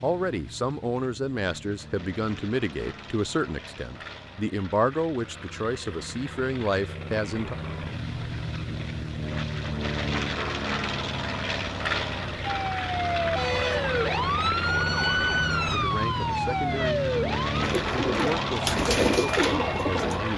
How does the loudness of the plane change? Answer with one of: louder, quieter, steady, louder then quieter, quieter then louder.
louder.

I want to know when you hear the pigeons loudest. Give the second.
19 s.